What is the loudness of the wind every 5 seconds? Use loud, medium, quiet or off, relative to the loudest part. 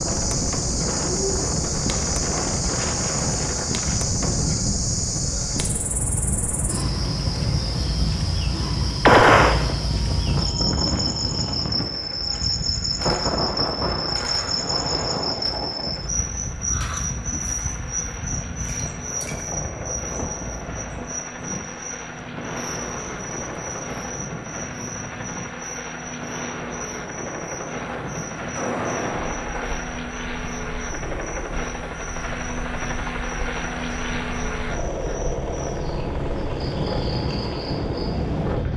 loud, loud, loud, medium, medium, medium, quiet, loud.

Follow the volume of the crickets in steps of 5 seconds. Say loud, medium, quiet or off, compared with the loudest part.
loud, loud, loud, loud, medium, quiet, quiet, quiet.